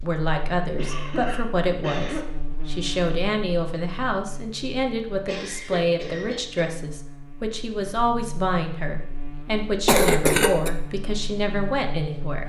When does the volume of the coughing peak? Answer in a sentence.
The loudest moment of the coughing is at 10 seconds.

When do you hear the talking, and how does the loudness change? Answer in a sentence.
The talking can be heard from 0.0 to 12.4 s, at a steady volume.